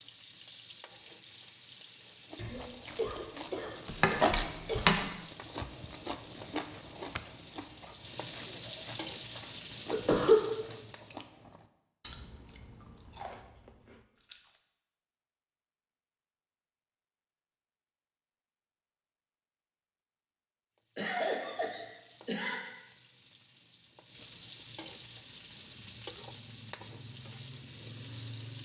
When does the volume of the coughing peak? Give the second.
10 s.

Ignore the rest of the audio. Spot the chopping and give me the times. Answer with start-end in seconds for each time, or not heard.
3.9-5.1.